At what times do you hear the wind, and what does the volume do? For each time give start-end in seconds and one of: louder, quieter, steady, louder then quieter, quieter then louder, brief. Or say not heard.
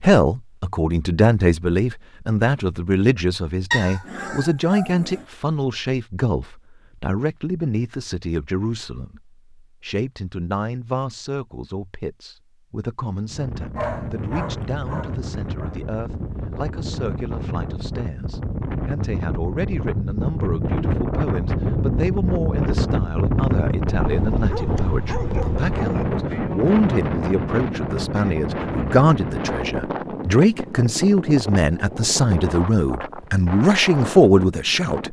13.2-35.0 louder then quieter.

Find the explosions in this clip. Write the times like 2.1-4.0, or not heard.
not heard.